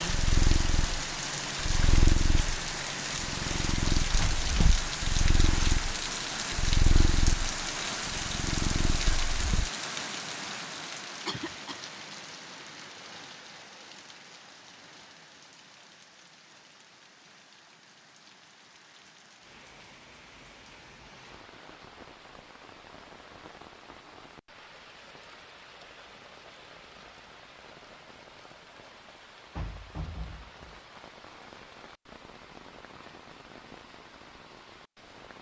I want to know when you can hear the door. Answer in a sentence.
You can hear the door from 4.2 to 4.8 s and from 29.6 to 30.8 s.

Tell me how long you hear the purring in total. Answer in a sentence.
You can hear the purring for 10 seconds altogether.